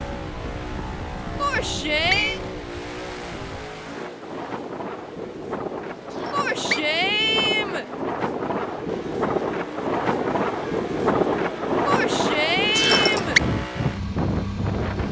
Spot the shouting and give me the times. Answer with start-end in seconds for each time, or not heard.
1.4-2.4, 6.3-7.8, 11.8-13.4.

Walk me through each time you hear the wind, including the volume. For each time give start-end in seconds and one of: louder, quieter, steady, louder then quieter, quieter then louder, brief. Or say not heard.
0.0-15.0 louder.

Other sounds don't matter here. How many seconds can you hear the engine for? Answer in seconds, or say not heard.
15 s.